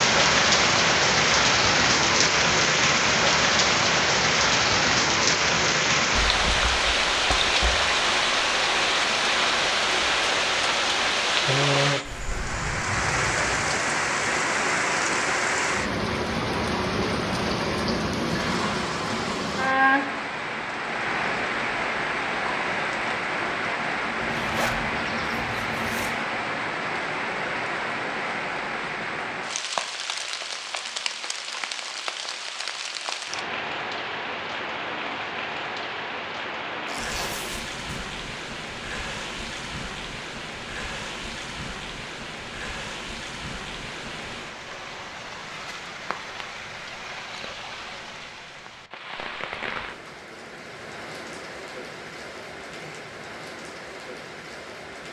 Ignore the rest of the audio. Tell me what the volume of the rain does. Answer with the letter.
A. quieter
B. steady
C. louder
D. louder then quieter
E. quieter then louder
A.